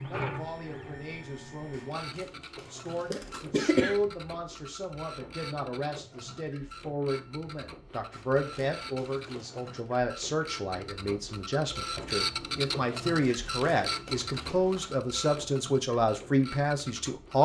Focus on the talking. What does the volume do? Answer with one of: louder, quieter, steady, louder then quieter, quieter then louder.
louder.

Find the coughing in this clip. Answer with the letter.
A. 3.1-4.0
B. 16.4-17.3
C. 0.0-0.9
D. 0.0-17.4
A.